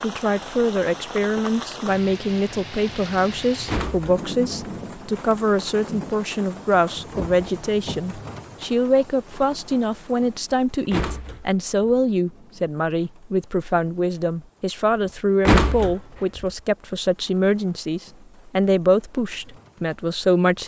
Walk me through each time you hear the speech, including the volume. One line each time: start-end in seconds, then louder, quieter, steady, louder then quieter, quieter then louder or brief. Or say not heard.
0.0-20.6 steady.